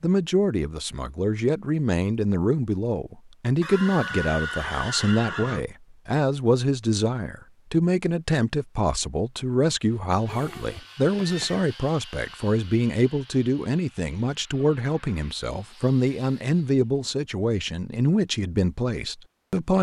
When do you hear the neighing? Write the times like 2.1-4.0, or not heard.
3.6-5.7, 10.2-11.7.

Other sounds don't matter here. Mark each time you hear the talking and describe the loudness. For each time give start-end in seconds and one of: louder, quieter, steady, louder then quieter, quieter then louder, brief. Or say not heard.
0.0-19.7 steady.